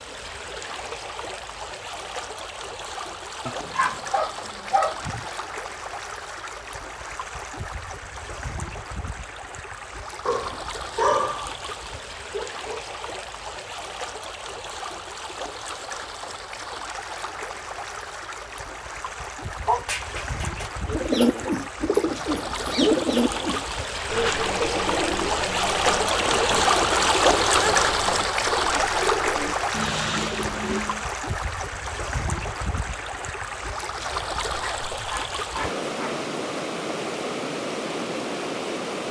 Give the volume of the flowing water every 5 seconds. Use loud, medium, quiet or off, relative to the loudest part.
quiet, quiet, quiet, quiet, medium, loud, medium, medium.